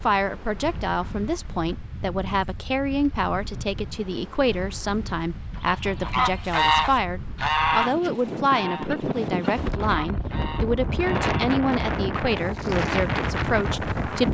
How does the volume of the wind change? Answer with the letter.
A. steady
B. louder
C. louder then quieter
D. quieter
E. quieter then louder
B.